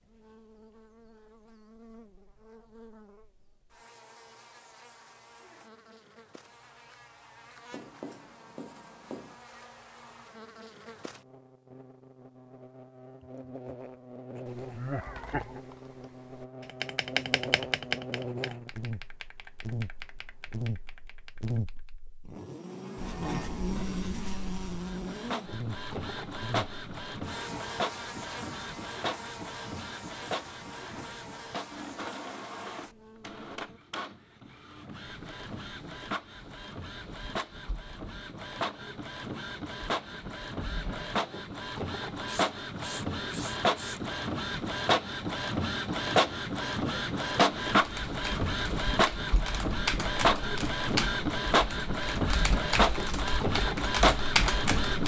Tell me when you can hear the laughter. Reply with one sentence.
You can hear the laughter from 14.7 to 15.6 s.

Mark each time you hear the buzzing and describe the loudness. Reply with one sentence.
You can hear the buzzing from 0.0 to 33.8 s, getting louder then quieter.